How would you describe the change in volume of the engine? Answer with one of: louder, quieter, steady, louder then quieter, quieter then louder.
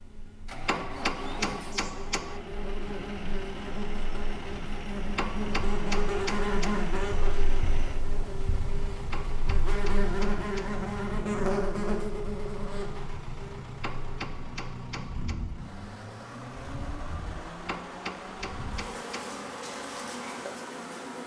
steady.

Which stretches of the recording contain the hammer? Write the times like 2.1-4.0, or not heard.
0.7-2.4, 5.2-6.8, 9.1-10.8, 13.8-15.4, 17.6-19.4.